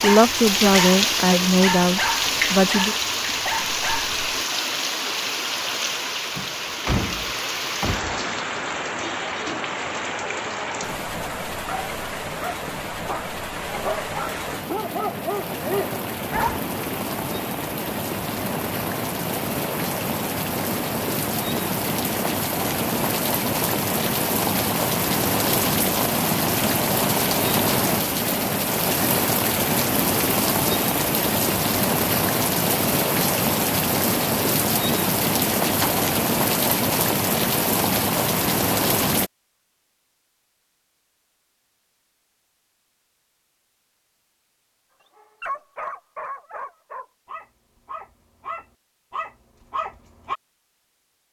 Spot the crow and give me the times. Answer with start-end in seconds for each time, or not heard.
not heard.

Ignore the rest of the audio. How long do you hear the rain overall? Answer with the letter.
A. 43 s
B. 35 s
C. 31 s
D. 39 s
D.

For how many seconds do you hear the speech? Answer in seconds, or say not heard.
3 s.